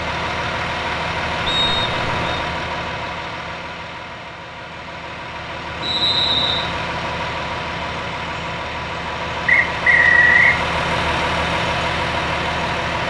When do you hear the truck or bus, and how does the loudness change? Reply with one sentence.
The truck or bus can be heard from 0.0 to 13.0 s, getting quieter then louder.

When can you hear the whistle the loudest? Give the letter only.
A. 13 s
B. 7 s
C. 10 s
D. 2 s
C.